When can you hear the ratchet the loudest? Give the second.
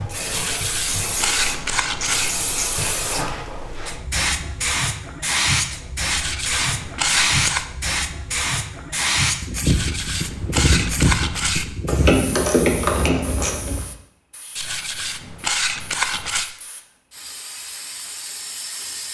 13 s.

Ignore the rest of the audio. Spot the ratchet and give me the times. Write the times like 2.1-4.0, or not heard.
0.8-2.9, 11.8-13.8.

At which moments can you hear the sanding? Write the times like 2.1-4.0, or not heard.
0.3-2.4, 6.0-7.7, 9.7-11.7, 14.6-16.5.